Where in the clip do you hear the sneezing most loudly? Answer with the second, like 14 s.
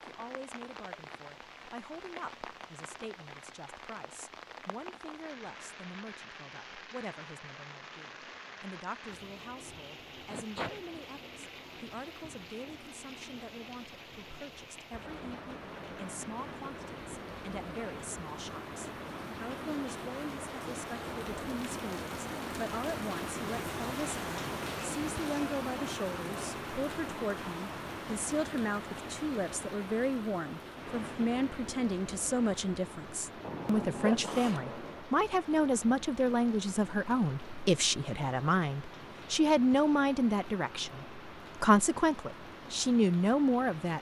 34 s.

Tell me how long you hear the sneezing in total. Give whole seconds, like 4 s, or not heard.
2 s.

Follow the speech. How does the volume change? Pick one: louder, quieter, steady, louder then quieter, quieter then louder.
louder.